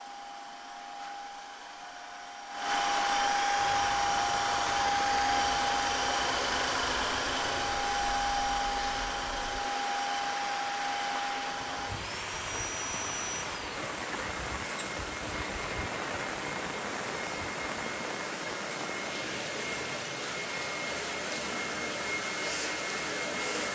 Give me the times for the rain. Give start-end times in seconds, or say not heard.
3.5-23.7.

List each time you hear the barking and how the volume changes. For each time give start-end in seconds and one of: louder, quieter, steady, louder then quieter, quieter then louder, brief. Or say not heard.
not heard.